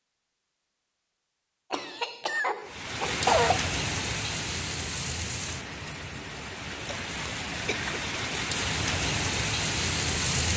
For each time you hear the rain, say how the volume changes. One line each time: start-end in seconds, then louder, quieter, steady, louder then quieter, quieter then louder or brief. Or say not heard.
2.6-10.5 quieter then louder.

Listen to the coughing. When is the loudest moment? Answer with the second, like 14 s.
3 s.